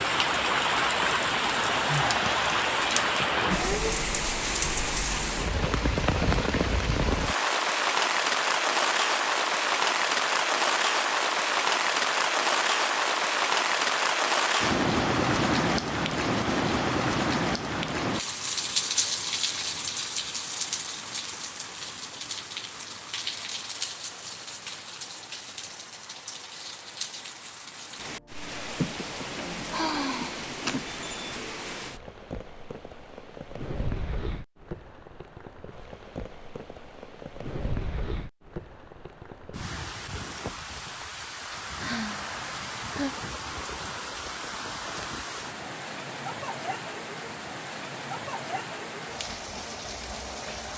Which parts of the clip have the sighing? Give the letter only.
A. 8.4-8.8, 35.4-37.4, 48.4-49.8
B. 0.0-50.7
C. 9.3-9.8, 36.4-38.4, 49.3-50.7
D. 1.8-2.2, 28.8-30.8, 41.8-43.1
D.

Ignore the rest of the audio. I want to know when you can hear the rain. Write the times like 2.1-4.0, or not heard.
0.0-50.7.